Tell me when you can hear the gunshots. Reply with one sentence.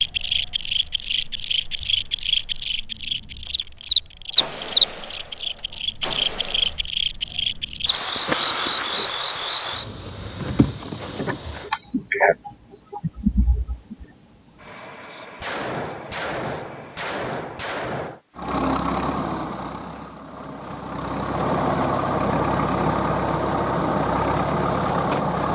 The gunshots can be heard from 3.5 to 6.8 s and from 15.4 to 18.2 s.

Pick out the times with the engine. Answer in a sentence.
The engine can be heard from 18.4 to 25.5 s.